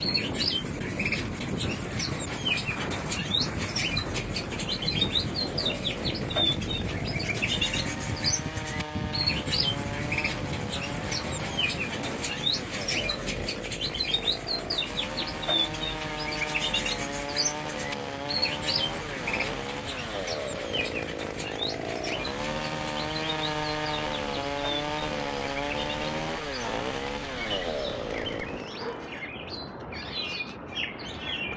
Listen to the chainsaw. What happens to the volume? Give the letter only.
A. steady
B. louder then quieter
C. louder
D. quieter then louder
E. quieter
C.